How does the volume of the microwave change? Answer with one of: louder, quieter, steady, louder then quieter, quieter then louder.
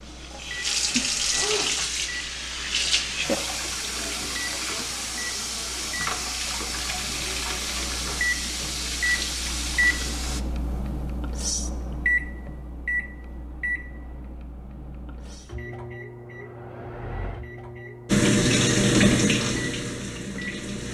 louder then quieter.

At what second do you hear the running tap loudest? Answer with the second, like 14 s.
19 s.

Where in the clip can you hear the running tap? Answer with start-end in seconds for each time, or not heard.
0.0-10.4, 18.1-20.9.